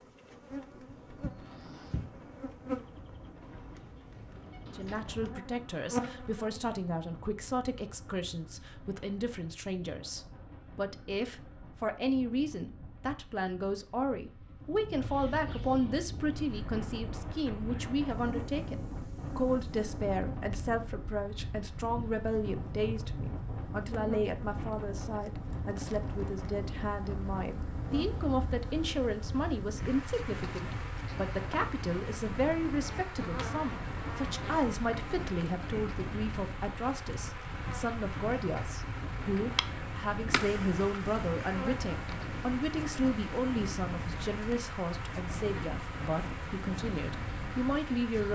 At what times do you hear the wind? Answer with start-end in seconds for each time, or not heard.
0.2-48.2.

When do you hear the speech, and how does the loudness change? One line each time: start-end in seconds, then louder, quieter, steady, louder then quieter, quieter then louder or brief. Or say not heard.
4.8-48.2 steady.